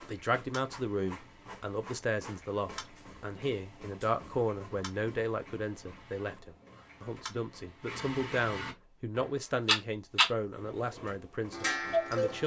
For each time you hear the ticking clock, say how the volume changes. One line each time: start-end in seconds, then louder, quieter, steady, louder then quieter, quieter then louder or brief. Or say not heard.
0.0-12.4 louder.